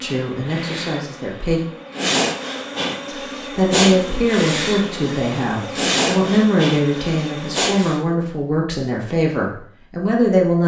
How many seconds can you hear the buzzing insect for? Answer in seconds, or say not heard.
8 s.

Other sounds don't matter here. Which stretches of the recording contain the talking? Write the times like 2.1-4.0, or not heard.
0.0-1.6, 3.0-10.6.